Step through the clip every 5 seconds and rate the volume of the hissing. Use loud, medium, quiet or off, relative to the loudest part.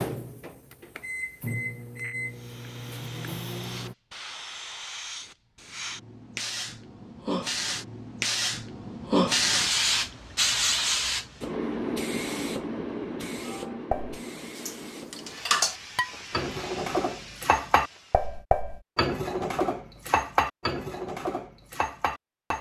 quiet, loud, loud, quiet, off.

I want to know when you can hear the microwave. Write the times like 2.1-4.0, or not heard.
0.0-4.0.